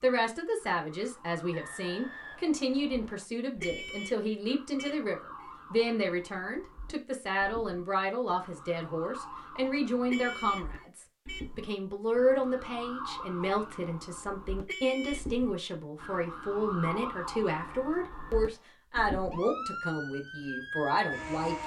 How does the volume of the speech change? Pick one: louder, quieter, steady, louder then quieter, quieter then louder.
steady.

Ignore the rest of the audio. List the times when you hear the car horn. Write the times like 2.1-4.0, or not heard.
3.6-5.5, 10.1-11.4, 14.7-15.3.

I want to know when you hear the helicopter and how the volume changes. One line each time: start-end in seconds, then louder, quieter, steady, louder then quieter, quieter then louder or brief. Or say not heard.
not heard.